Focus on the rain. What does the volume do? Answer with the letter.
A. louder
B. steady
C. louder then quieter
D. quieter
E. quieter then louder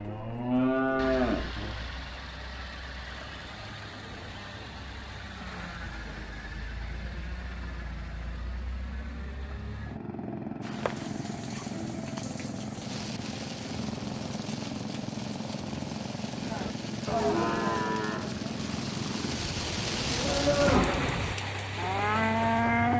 A.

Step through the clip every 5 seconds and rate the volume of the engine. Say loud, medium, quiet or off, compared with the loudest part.
medium, medium, loud, loud, loud.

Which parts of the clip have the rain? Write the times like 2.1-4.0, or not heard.
10.6-22.9.